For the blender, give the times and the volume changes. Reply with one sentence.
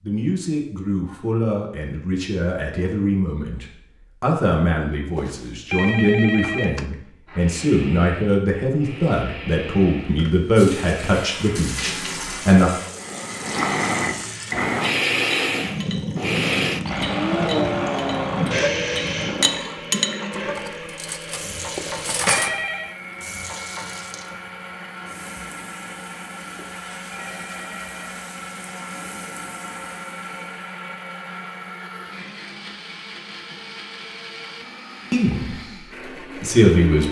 You can hear the blender from 7.2 to 37.0 s, getting louder then quieter.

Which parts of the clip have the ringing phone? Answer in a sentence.
You can hear the ringing phone from 5.2 to 6.8 s, from 21.8 to 22.9 s and from 26.6 to 28.1 s.